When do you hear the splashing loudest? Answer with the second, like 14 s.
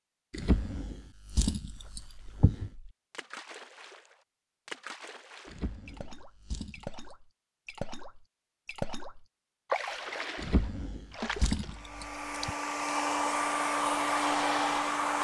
10 s.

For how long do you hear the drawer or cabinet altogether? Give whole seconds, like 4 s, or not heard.
6 s.